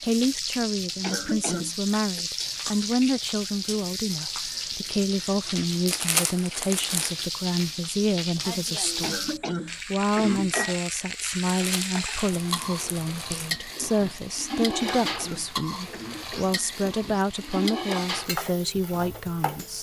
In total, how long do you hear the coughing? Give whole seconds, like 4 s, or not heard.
5 s.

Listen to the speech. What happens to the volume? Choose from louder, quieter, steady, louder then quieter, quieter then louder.
steady.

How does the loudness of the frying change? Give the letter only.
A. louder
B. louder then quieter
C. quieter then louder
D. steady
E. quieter
D.